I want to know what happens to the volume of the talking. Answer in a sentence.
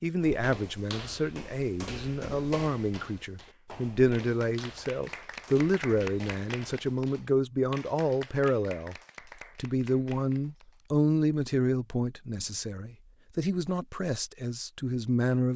The loudness of the talking stays about the same.